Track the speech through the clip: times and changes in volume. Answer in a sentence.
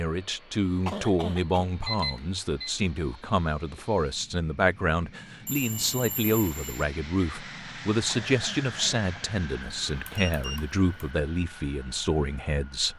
You can hear the speech from 0.0 to 12.9 s, at a steady volume.